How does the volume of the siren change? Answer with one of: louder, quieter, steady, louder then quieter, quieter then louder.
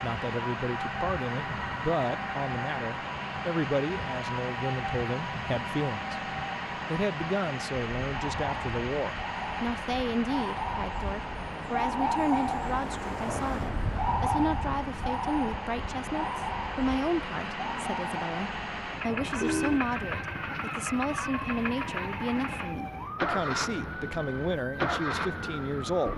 louder then quieter.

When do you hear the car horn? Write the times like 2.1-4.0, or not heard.
19.1-19.9.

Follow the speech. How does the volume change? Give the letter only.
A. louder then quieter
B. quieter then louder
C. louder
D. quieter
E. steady
E.